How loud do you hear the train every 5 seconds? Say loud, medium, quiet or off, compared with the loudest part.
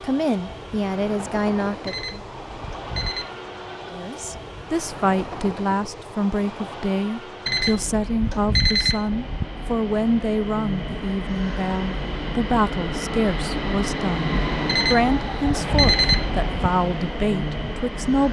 medium, medium, loud, loud.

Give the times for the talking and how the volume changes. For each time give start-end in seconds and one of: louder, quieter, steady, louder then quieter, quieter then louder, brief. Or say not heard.
0.0-2.2 brief
3.9-18.2 steady.